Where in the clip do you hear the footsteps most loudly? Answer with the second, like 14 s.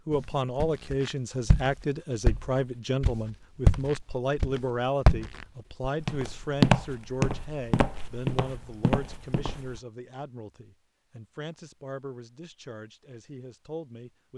7 s.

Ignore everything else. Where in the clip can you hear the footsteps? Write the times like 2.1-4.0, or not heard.
0.1-9.8.